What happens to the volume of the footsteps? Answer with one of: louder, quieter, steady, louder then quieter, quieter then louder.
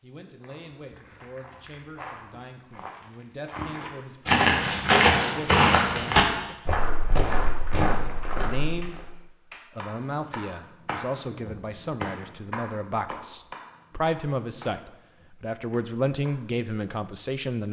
louder then quieter.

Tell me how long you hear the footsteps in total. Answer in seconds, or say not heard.
9 s.